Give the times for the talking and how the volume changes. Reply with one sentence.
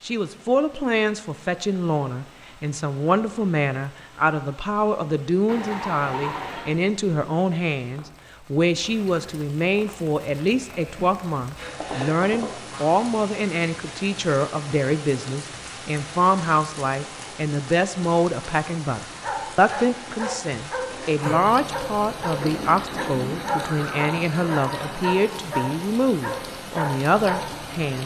You can hear the talking from 0.0 to 28.0 s, at a steady volume.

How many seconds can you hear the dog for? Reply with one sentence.
The dog can be heard for 9 seconds in total.